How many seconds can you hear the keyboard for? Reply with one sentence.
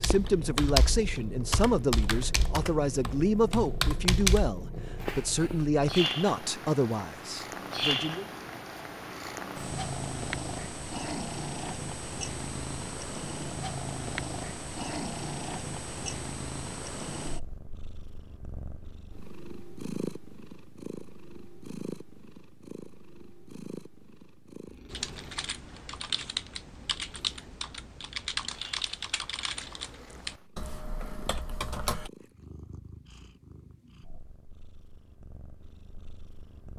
The keyboard can be heard for 12 seconds in total.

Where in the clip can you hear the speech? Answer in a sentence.
The speech can be heard from 0.0 to 8.2 s.